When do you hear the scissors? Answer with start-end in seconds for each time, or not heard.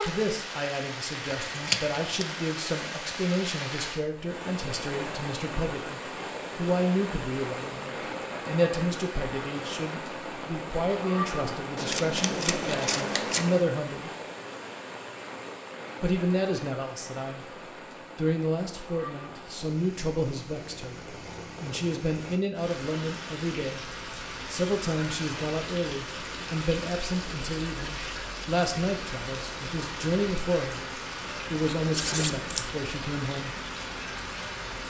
1.2-2.2, 11.8-13.7, 31.9-32.7.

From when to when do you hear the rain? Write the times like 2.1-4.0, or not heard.
0.0-34.8.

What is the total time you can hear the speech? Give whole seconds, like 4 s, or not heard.
30 s.